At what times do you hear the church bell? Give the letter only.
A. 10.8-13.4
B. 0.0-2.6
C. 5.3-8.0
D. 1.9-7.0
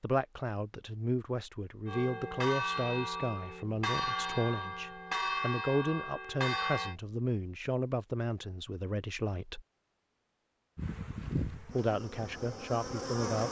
D.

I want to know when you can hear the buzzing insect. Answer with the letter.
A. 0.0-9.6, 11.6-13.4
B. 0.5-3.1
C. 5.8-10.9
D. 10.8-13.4
D.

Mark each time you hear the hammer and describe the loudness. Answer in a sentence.
The hammer can't be heard in this clip.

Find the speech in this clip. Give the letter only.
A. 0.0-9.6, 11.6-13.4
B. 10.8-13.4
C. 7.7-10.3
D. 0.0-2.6
A.